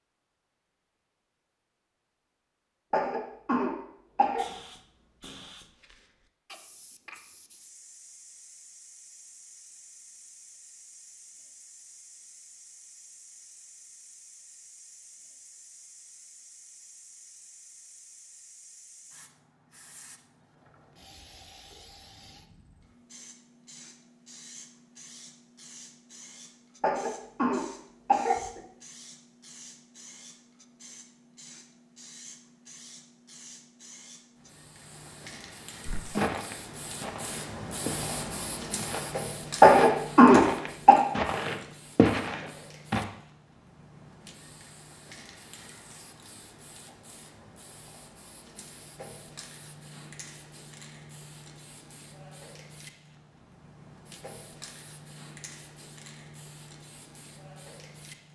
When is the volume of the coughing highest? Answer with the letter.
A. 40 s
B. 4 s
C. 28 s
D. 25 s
A.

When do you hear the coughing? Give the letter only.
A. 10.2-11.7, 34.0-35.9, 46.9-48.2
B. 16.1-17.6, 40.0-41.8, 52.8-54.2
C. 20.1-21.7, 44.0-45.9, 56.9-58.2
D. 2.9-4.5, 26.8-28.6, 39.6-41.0
D.